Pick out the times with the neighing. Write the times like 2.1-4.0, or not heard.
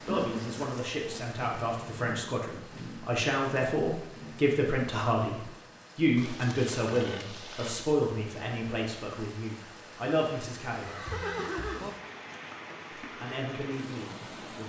0.1-1.4, 6.2-8.0, 10.8-11.9.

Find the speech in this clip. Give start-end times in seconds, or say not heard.
0.1-11.2, 13.0-14.6.